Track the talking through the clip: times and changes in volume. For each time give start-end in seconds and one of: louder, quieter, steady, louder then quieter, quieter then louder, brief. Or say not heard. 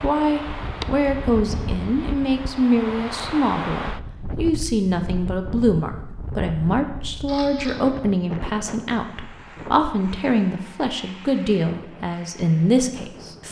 0.0-13.4 steady.